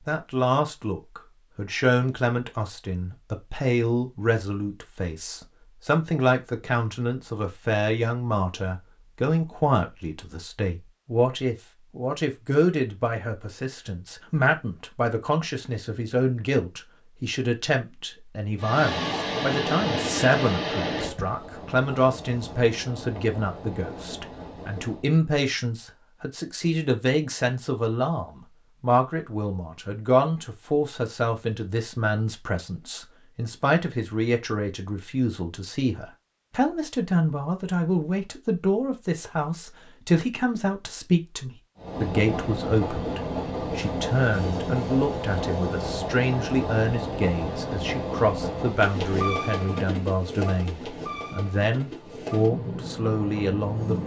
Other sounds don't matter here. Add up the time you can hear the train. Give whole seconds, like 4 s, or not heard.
19 s.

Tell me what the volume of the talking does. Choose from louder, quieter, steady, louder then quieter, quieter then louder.
steady.